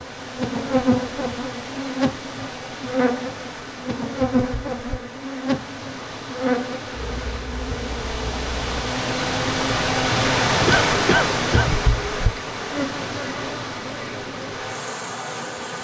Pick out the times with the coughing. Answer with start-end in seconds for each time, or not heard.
10.7-11.7.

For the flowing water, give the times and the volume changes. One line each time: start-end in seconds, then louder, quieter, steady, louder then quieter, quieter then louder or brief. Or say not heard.
0.0-15.7 louder then quieter.